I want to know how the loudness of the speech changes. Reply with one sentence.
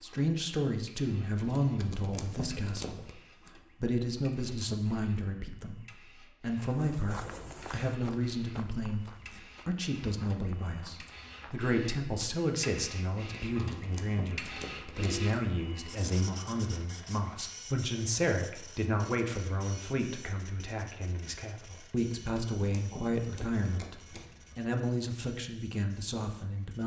The volume of the speech stays about the same.